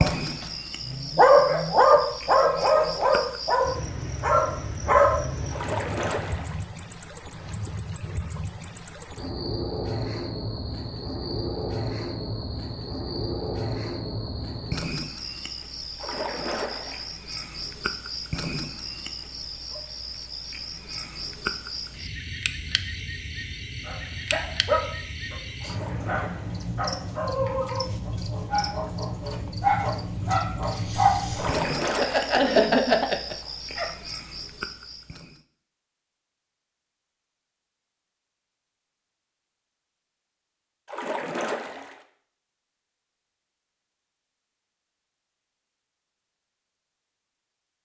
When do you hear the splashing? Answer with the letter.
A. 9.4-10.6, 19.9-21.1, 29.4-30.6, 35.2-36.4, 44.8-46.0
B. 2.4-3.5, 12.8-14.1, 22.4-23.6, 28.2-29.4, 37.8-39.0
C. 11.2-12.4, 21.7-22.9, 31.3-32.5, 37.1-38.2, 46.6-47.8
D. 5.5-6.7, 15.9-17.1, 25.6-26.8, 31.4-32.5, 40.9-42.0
D.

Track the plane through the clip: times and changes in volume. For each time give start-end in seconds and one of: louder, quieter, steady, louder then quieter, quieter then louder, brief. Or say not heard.
not heard.